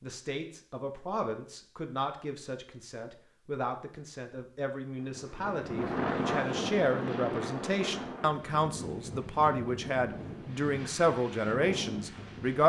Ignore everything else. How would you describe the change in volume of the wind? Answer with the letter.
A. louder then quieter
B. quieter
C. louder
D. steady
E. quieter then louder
B.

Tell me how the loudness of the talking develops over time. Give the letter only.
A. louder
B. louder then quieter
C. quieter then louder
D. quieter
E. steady
A.